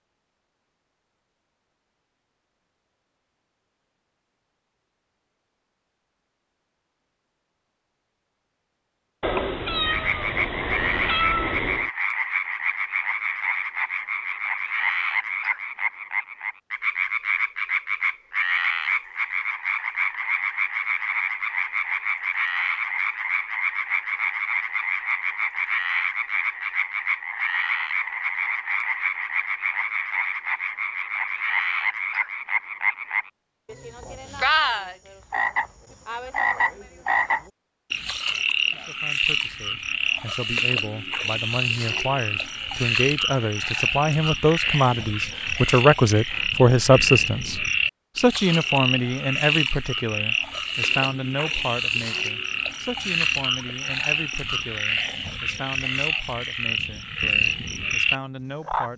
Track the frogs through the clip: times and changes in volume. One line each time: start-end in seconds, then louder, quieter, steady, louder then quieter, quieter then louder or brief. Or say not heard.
9.8-58.9 steady.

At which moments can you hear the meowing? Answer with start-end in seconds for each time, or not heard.
9.2-11.9.